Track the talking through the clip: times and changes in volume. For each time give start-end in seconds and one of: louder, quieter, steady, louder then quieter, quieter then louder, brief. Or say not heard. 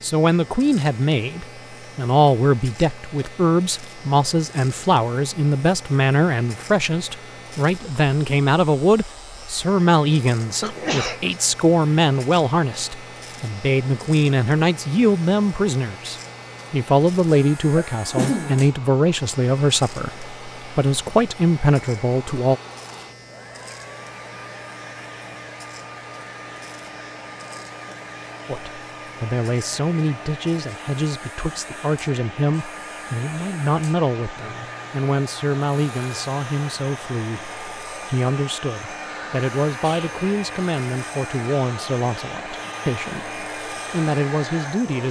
0.0-22.6 steady
28.4-45.0 steady.